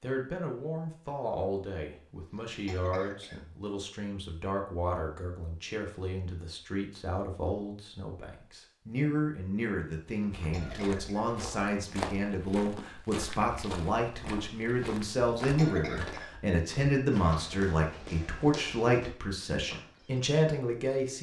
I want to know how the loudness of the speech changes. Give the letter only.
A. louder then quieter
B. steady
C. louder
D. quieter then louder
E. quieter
C.